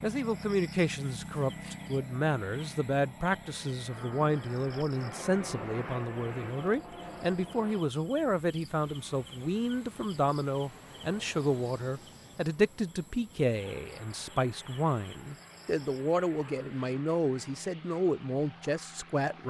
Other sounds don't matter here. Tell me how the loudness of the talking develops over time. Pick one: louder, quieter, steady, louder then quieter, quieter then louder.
steady.